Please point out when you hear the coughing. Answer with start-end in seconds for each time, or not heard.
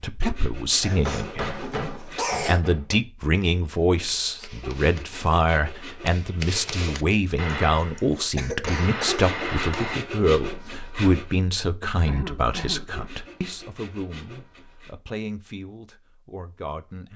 0.8-2.6, 7.5-9.3, 12.1-13.1.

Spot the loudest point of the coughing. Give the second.
2 s.